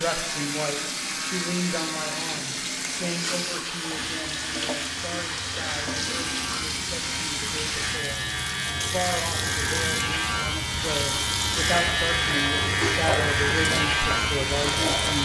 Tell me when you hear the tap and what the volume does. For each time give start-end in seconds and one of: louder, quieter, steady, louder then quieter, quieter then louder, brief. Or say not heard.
0.0-15.1 steady.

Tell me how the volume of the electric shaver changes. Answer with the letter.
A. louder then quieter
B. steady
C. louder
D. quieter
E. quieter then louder
C.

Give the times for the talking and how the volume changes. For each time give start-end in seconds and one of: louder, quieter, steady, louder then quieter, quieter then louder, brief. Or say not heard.
0.0-15.1 quieter then louder.